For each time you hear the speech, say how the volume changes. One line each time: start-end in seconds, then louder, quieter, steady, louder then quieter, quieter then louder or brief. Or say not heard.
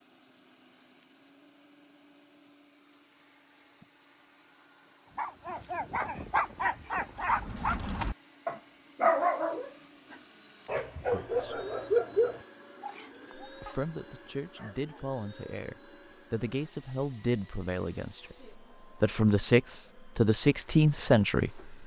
11.1-11.6 brief
13.4-21.8 louder.